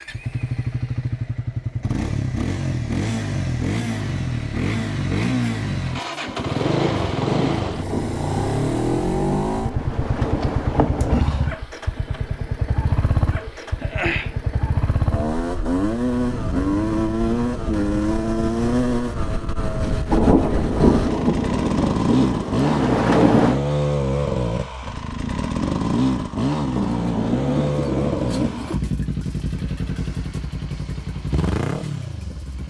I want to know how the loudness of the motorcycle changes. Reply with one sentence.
The loudness of the motorcycle stays about the same.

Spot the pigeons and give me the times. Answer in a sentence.
The pigeons can be heard from 12.8 to 14.3 s and from 26.8 to 28.8 s.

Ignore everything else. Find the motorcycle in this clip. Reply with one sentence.
The motorcycle can be heard from 0.0 to 32.6 s.